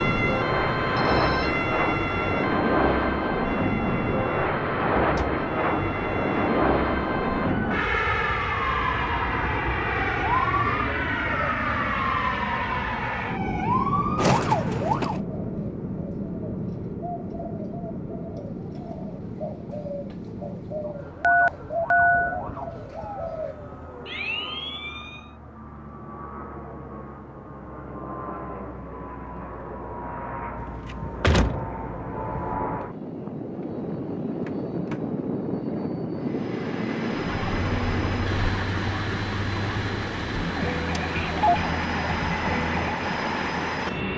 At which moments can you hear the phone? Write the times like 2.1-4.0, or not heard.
0.9-1.6, 21.2-22.4, 41.0-41.6.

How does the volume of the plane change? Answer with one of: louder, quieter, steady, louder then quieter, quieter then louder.
quieter then louder.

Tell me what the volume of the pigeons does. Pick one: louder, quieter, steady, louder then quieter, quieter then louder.
louder.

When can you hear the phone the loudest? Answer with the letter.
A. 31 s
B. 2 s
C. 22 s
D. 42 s
C.